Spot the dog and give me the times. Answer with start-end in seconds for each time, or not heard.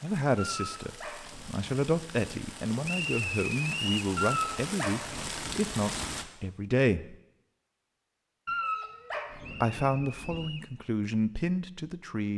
0.3-2.4, 4.2-6.2, 8.4-10.5.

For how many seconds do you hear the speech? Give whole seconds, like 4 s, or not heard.
10 s.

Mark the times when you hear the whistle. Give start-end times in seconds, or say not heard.
2.9-4.1, 9.4-10.7.